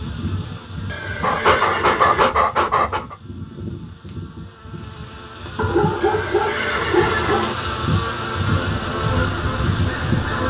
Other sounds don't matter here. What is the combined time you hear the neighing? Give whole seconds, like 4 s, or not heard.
3 s.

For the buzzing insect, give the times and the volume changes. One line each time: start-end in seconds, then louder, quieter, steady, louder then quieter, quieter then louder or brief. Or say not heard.
0.0-10.4 louder.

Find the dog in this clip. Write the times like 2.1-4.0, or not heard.
1.2-3.1, 5.5-7.5.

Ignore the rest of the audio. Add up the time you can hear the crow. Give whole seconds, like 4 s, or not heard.
2 s.